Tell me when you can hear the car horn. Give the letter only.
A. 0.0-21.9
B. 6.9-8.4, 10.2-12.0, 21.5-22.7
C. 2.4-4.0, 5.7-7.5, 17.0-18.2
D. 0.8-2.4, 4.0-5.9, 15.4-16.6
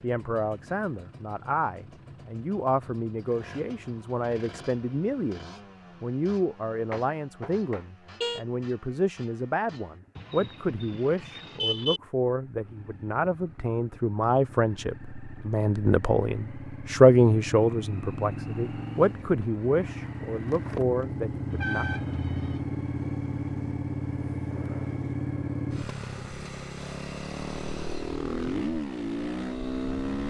B.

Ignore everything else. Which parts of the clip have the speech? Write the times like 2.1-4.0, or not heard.
0.0-21.9.